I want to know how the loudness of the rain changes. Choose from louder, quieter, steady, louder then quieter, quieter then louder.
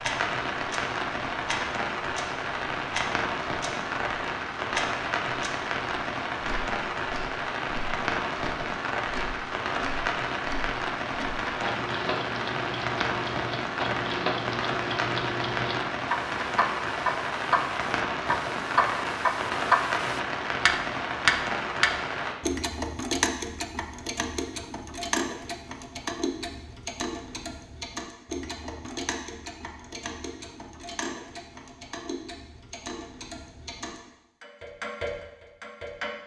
steady.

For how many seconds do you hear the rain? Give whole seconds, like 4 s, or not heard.
22 s.